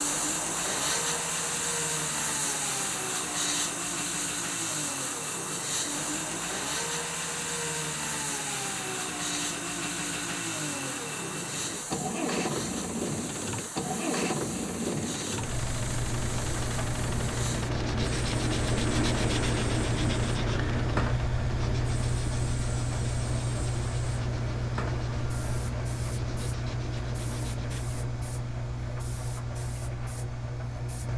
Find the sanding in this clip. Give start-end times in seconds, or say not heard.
15.8-27.9.